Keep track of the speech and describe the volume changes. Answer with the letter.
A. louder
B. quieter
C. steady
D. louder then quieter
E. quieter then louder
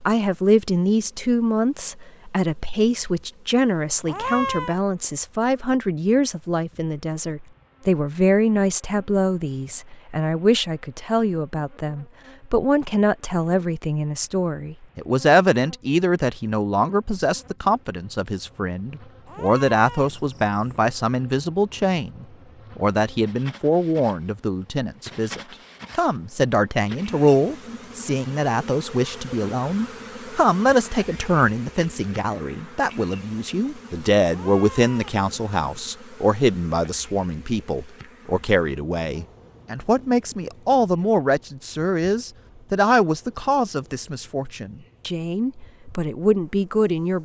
C.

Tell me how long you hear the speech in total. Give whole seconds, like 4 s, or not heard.
47 s.